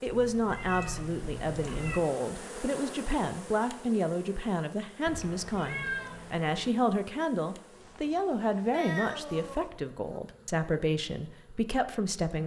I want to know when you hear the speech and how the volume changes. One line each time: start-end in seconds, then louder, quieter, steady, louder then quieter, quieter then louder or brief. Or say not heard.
0.0-12.4 steady.